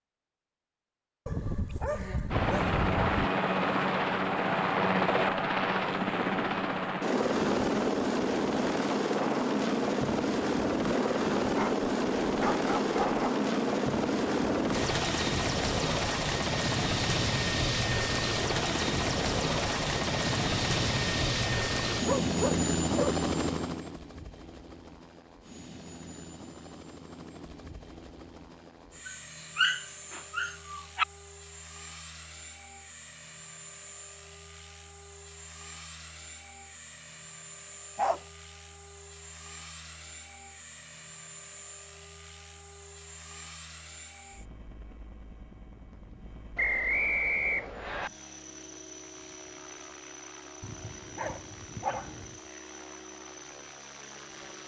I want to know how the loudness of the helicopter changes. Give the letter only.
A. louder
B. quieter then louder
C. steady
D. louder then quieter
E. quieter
E.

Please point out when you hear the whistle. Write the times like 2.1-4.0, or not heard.
46.5-48.1.